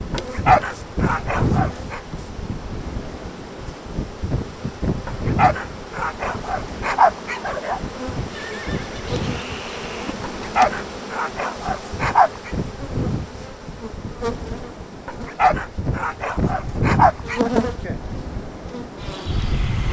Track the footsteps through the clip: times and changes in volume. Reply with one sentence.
You can't hear the footsteps here.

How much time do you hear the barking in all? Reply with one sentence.
The barking can be heard for 9 seconds in total.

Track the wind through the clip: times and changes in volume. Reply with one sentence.
The wind can be heard from 0.0 to 19.8 s, getting quieter then louder.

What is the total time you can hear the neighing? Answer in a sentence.
You can hear the neighing for 2 seconds altogether.